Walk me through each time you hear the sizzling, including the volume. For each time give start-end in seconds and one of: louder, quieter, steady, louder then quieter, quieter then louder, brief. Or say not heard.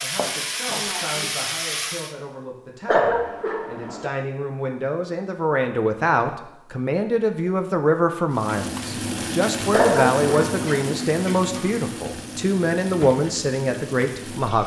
0.0-2.1 brief
8.3-14.6 quieter.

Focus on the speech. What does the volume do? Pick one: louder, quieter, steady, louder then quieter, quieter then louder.
louder.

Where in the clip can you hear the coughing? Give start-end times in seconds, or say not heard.
2.9-4.1, 9.7-10.9.